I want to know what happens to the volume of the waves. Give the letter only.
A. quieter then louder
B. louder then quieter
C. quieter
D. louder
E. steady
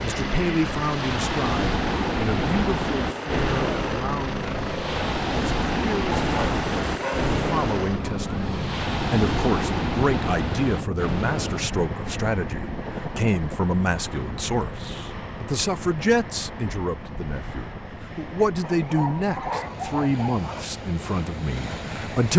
C.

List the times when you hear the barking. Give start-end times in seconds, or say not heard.
6.1-7.4, 18.6-20.6.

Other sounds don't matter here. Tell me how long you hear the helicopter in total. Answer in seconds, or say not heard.
22 s.